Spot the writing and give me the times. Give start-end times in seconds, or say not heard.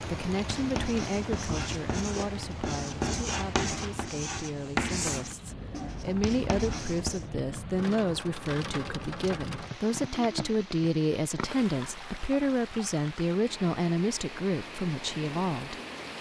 0.3-7.3.